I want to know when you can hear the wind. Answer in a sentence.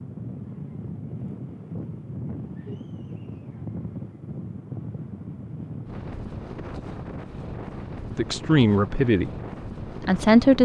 You can hear the wind from 0.0 to 10.6 s.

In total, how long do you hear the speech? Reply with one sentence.
You can hear the speech for 2 seconds altogether.